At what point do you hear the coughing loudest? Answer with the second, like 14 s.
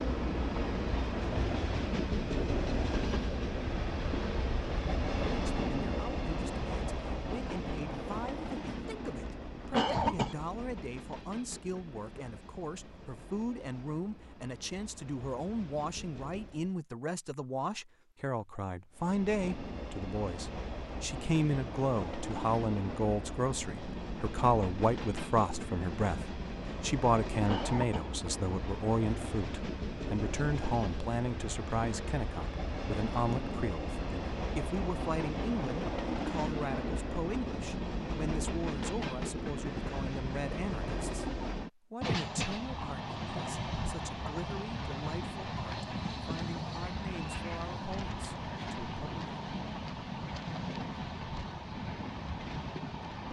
10 s.